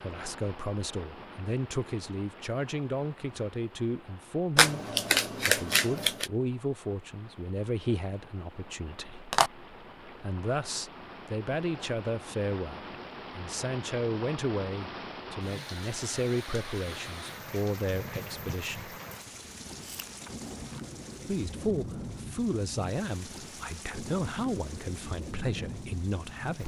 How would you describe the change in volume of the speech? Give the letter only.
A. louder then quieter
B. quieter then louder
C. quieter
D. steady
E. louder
D.